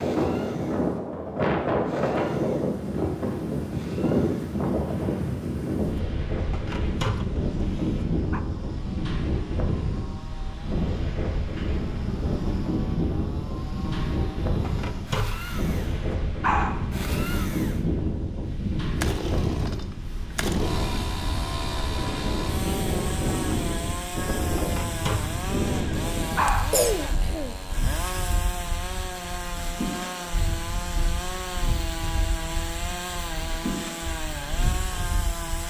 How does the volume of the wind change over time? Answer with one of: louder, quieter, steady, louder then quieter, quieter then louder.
quieter.